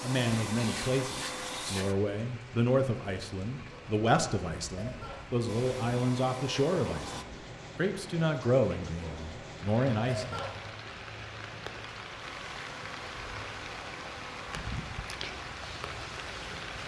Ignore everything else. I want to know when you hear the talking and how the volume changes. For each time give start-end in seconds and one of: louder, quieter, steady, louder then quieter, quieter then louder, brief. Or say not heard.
0.0-10.4 steady.